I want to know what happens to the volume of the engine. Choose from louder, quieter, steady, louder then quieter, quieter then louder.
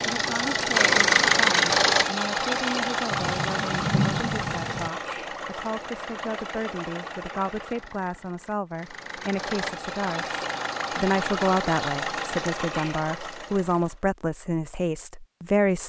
quieter then louder.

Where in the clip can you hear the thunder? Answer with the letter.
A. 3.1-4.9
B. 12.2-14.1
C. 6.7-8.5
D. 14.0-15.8
A.